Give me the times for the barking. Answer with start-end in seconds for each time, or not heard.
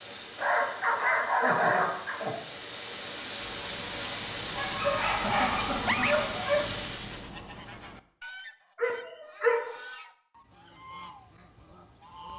0.3-2.2, 4.5-6.7, 8.8-9.7.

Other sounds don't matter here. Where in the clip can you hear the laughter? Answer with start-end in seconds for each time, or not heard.
1.4-2.4, 5.2-6.3, 9.2-9.8.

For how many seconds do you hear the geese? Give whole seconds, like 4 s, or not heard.
9 s.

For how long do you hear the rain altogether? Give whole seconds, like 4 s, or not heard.
7 s.